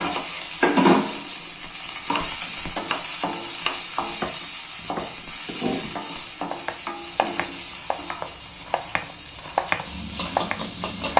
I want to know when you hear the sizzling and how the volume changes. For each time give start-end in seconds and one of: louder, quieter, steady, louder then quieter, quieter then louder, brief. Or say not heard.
0.0-11.1 quieter.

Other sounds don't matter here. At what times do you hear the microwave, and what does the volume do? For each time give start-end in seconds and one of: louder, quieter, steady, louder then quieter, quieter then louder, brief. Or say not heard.
not heard.